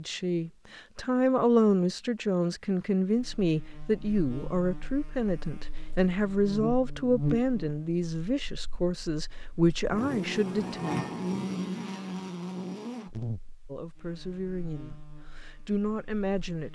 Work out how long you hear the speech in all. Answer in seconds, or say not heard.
14 s.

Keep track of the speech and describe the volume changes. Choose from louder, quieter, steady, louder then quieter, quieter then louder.
quieter.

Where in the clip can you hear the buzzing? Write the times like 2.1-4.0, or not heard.
3.1-16.7.